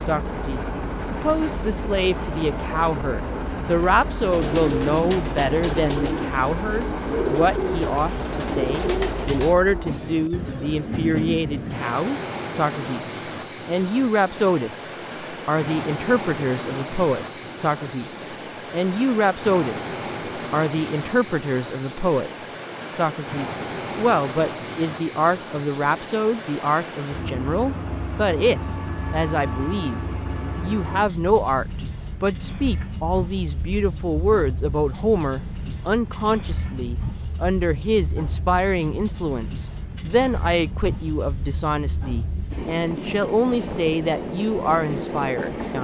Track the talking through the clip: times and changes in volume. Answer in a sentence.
You can hear the talking from 0.1 to 30.0 s, at a steady volume; and from 30.6 to 45.7 s, at a steady volume.